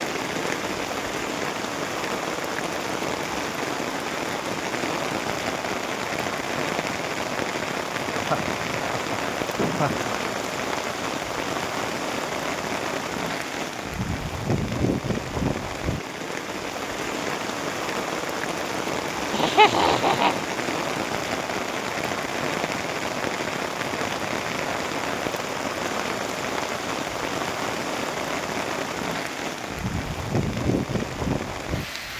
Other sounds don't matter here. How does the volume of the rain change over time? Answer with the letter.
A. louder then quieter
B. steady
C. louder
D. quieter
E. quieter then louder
B.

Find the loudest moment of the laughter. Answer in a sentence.
The volume of the laughter peaks at 20 seconds.